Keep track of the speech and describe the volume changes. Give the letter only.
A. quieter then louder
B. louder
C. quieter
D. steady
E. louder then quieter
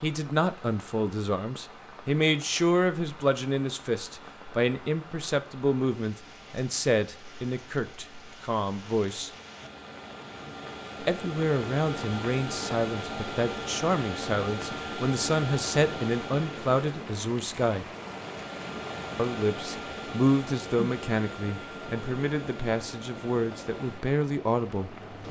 D.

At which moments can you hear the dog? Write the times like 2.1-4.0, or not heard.
not heard.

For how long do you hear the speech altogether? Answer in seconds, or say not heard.
22 s.